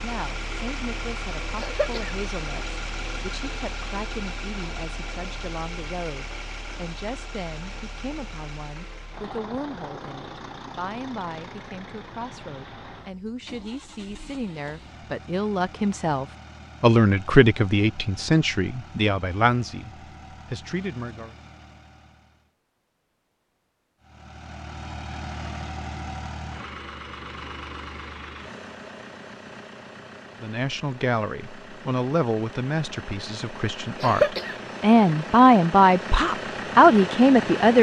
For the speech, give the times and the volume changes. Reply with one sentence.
The speech can be heard from 0.0 to 21.4 s, getting louder; and from 30.4 to 37.7 s, getting louder.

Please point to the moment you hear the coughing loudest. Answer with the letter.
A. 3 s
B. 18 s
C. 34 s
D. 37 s
C.